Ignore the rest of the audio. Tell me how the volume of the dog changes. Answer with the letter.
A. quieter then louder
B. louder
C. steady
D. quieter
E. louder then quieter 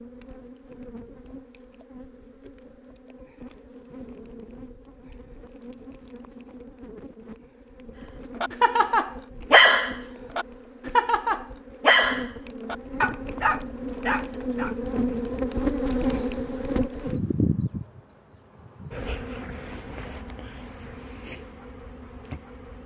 D.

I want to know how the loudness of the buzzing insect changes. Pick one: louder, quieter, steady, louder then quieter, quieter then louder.
louder then quieter.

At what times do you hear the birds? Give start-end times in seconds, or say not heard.
not heard.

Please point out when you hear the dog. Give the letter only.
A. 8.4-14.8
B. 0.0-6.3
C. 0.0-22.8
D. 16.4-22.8
A.